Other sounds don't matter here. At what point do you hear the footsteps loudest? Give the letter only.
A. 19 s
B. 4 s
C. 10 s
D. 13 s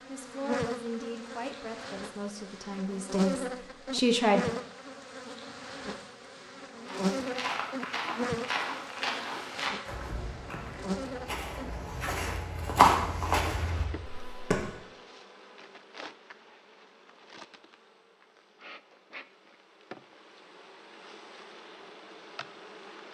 D.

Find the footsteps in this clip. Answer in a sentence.
You can hear the footsteps from 6.8 to 14.7 s.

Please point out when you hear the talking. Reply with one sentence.
You can hear the talking from 0.1 to 4.5 s.